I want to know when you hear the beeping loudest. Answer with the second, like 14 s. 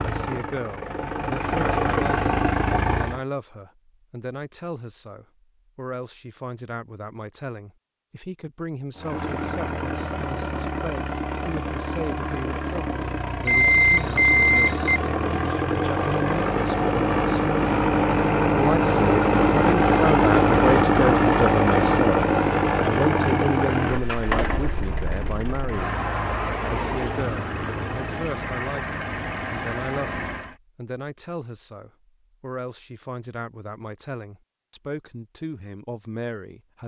14 s.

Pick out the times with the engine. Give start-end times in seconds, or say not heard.
0.0-3.2, 8.9-30.6.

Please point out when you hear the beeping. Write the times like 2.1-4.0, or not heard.
13.4-15.0.